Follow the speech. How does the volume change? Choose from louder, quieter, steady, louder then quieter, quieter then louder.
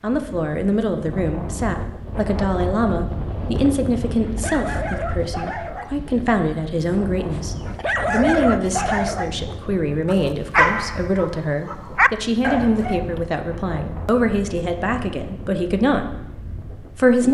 steady.